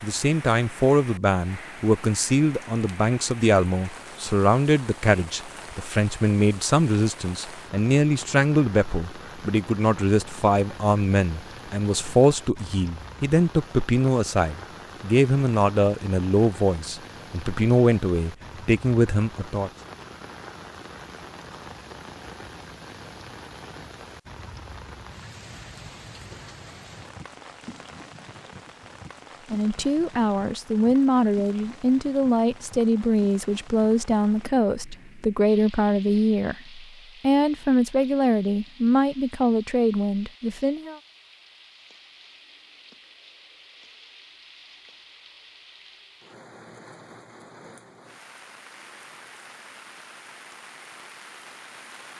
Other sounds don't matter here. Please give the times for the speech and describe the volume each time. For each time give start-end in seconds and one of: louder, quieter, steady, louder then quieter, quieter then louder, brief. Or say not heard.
0.0-19.7 steady
29.5-41.0 steady.